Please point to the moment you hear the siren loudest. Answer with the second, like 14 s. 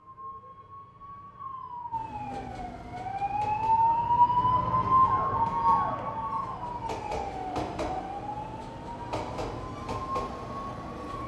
5 s.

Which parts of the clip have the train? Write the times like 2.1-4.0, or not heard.
1.9-11.2.